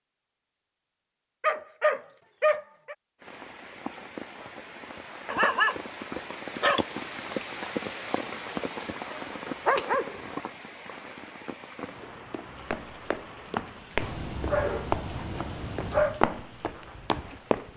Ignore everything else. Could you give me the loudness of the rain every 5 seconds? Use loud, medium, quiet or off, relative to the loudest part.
medium, loud, medium, quiet.